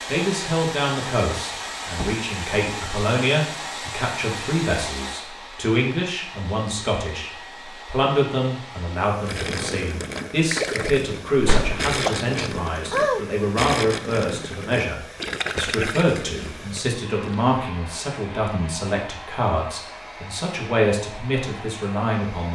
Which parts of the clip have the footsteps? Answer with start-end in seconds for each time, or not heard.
not heard.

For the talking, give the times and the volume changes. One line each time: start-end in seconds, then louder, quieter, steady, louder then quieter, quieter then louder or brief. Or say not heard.
0.1-22.4 steady.